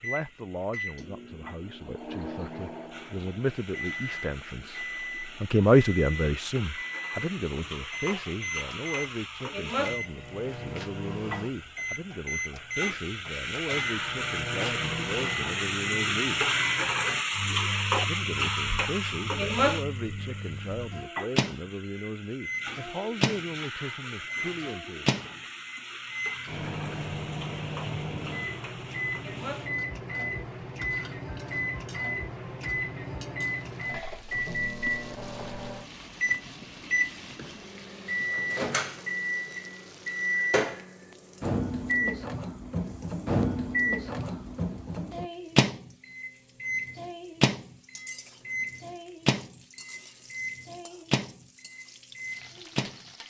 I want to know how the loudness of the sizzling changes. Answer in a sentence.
The loudness of the sizzling goes up, then down.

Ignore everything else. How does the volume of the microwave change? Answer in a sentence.
The volume of the microwave goes up.